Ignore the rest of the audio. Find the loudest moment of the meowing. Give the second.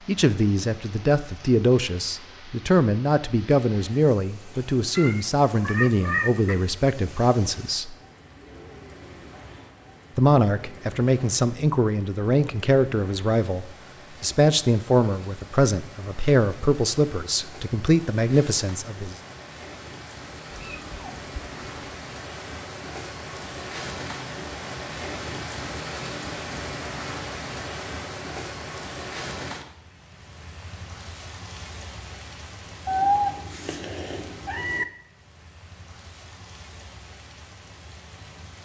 33 s.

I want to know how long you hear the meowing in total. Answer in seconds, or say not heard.
5 s.